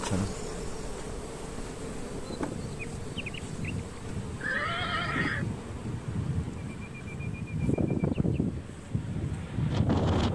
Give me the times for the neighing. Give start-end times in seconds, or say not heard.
4.4-5.5.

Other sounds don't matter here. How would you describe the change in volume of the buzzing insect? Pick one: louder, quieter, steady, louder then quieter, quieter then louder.
quieter.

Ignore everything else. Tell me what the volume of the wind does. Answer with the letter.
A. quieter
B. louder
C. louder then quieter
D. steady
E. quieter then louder
B.